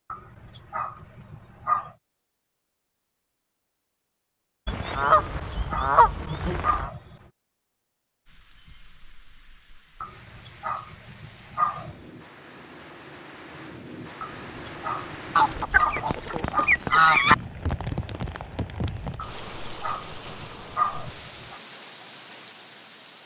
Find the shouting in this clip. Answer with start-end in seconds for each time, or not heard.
not heard.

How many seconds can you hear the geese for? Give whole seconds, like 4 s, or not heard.
4 s.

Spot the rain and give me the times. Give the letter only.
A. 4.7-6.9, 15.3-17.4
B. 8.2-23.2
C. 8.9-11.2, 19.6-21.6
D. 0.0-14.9
B.